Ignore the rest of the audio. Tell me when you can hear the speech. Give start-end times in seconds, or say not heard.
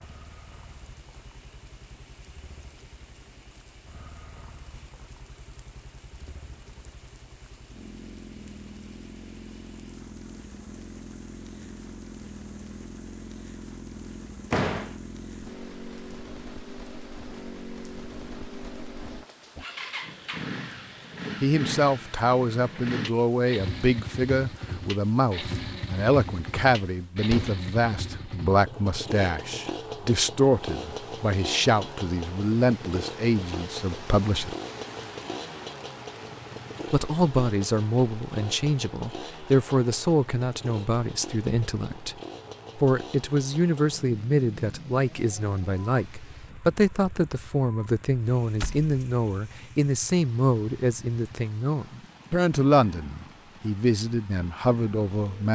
21.4-34.5, 36.9-42.1, 42.8-55.5.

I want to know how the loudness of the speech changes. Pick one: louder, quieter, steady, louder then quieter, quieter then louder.
steady.